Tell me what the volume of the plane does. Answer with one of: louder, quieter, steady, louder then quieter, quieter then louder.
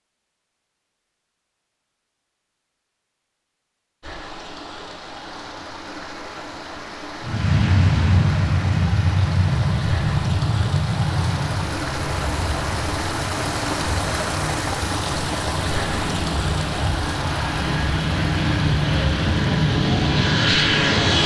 quieter then louder.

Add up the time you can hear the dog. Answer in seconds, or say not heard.
not heard.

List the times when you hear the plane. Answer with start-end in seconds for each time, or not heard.
7.2-21.2.